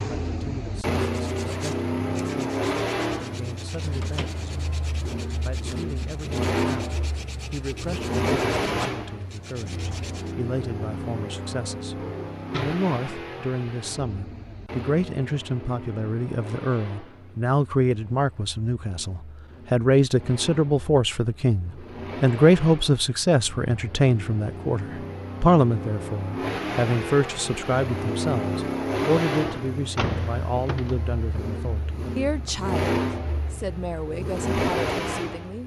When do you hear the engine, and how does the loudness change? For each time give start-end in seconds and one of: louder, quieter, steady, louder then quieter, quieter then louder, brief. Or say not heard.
0.0-35.6 quieter then louder.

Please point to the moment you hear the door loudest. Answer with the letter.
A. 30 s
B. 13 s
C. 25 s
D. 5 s
A.